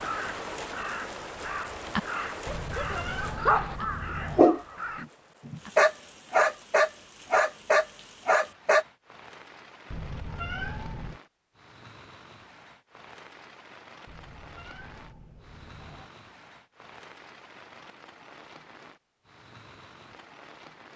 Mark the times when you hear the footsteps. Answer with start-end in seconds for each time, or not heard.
not heard.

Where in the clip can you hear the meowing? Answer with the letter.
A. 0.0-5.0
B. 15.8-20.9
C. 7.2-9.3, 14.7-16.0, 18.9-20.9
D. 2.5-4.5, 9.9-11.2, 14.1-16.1
D.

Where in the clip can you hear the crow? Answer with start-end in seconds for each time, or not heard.
0.0-5.0.